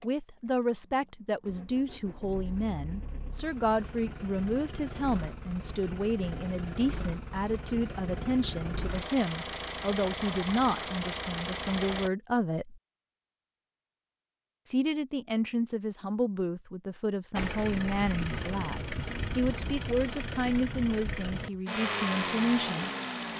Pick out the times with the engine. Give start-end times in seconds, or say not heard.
0.0-12.1, 17.4-23.3.